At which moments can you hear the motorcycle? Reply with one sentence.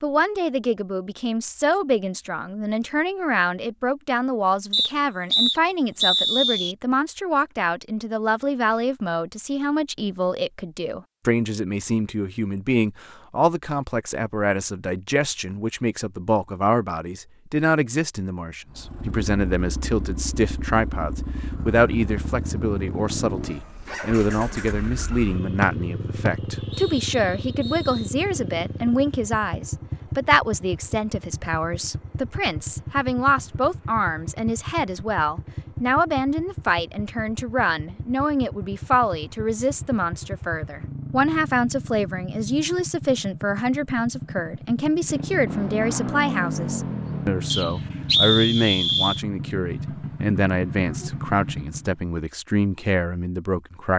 The motorcycle can be heard from 18.7 to 52.0 s.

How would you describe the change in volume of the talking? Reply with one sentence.
The volume of the talking stays about the same.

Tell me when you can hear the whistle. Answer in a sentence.
You can hear the whistle from 4.7 to 6.8 s, from 26.2 to 28.1 s and from 47.5 to 49.2 s.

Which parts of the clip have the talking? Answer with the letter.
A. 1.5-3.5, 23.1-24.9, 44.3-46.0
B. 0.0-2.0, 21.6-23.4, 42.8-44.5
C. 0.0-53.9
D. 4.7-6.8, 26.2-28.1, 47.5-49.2
C.